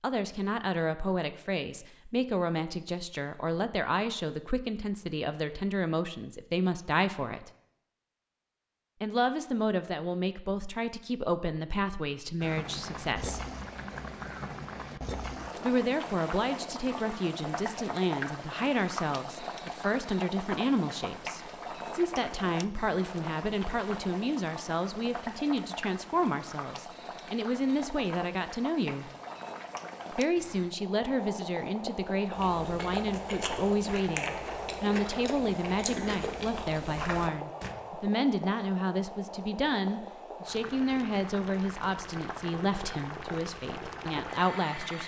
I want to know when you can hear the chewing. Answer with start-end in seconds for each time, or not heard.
32.4-37.8.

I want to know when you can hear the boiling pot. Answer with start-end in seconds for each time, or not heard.
12.4-45.0.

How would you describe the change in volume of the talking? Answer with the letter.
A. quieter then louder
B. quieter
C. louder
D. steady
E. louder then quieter
D.